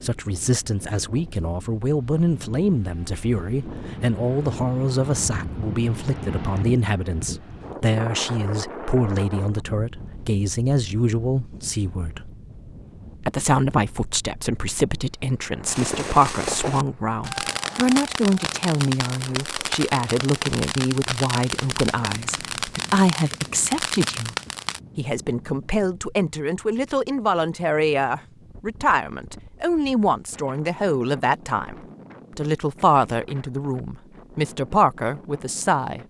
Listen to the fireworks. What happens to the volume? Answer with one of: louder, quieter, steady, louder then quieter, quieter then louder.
steady.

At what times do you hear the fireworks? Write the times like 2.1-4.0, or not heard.
15.7-24.8.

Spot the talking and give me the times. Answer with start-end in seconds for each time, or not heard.
0.0-12.3, 13.2-24.4, 24.9-31.8, 32.4-36.0.